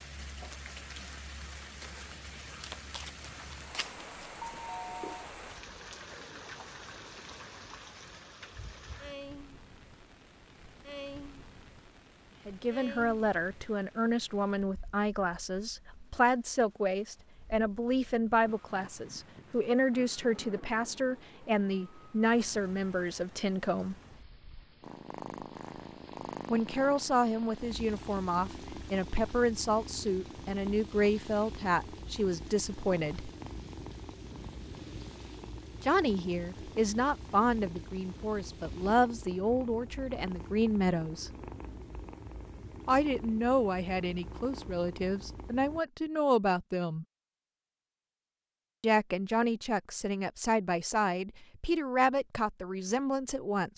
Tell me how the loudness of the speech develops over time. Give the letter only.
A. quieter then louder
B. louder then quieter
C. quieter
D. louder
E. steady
E.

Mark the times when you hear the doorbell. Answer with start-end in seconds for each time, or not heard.
4.4-5.3.